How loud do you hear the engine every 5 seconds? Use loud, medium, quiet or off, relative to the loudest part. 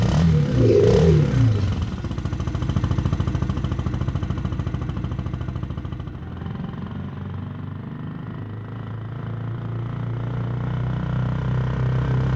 loud, medium, loud.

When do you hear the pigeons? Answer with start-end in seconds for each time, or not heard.
0.2-1.8.